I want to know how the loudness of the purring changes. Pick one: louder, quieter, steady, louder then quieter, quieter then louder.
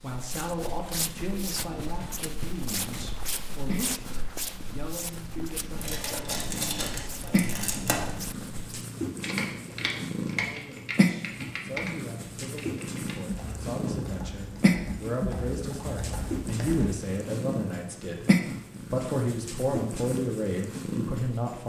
louder.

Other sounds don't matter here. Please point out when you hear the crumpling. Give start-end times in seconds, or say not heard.
5.8-8.2.